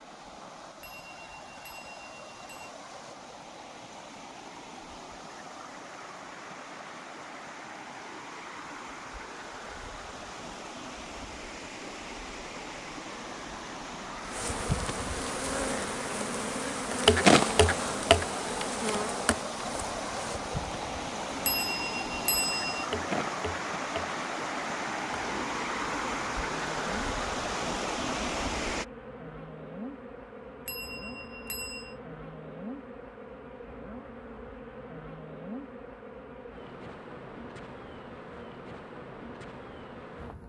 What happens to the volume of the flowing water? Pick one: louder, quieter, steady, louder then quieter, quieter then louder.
louder.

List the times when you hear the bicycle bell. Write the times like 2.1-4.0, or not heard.
0.8-2.7, 21.4-22.9, 30.6-31.9.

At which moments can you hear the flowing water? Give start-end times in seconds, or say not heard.
0.0-28.9.